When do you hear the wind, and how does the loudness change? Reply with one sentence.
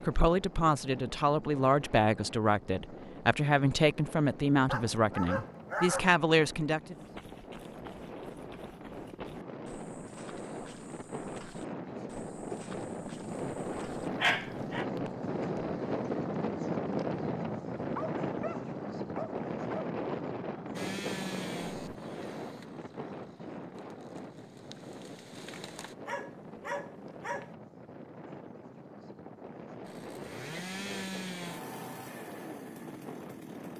The wind can be heard from 0.0 to 33.7 s, getting louder then quieter.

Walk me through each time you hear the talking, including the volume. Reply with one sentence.
The talking can be heard from 0.0 to 7.0 s, at a steady volume.